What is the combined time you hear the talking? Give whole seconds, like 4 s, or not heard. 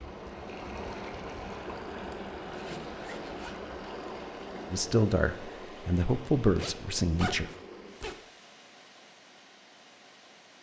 3 s.